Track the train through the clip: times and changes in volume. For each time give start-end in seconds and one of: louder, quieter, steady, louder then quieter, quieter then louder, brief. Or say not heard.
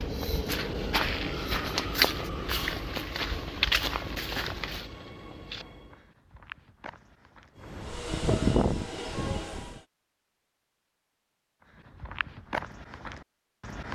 0.0-6.1 quieter
7.5-9.8 brief.